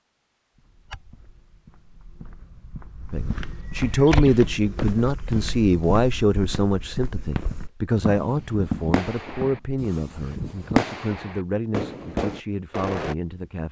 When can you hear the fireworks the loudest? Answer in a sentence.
The loudest moment of the fireworks is at 11 seconds.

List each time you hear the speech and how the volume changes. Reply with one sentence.
The speech can be heard from 3.1 to 13.6 s, getting quieter.